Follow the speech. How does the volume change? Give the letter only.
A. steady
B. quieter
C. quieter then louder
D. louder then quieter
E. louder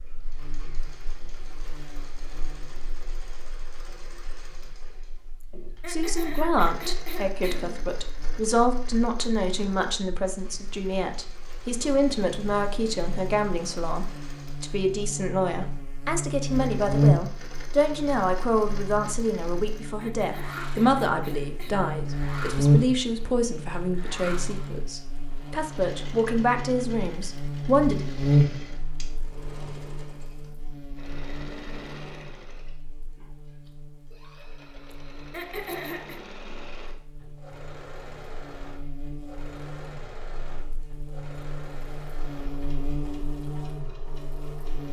A.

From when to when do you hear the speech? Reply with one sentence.
You can hear the speech from 5.8 to 28.1 s.